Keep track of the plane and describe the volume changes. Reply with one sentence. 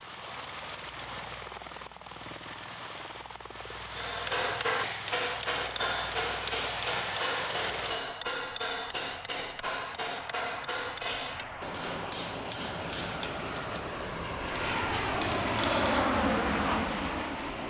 The volume of the plane goes up.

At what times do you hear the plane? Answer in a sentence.
You can hear the plane from 0.0 to 17.6 s.